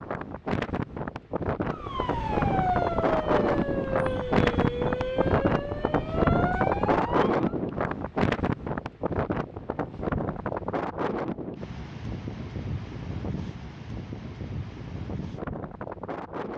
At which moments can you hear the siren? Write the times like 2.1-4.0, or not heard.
1.6-7.5.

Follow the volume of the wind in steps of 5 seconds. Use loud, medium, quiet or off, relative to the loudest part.
loud, loud, medium, medium.